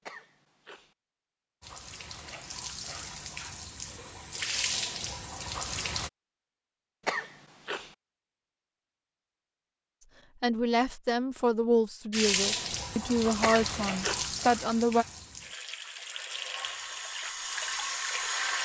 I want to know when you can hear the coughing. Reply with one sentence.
The coughing can be heard from 0.1 to 0.9 s, from 7.0 to 8.0 s and from 13.4 to 14.3 s.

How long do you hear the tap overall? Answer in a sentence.
You can hear the tap for 11 seconds altogether.